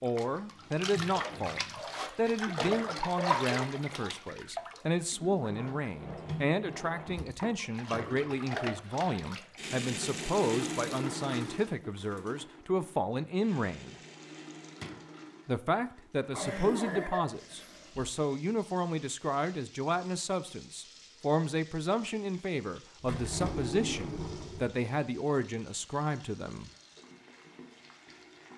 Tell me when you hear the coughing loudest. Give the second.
17 s.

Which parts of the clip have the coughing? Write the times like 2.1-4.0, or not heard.
5.1-5.8, 16.3-18.1.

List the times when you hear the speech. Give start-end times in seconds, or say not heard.
0.0-13.9, 15.4-26.7.